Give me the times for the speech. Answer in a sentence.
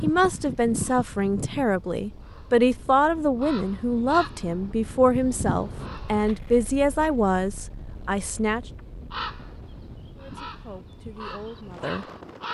The speech can be heard from 0.0 to 8.7 s and from 10.2 to 12.1 s.